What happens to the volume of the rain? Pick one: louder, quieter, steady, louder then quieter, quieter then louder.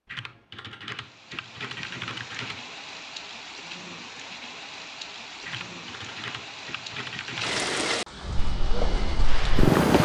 louder.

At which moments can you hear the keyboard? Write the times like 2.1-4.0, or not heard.
0.1-2.6, 5.5-7.7.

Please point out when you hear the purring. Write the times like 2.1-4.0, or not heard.
8.3-9.9.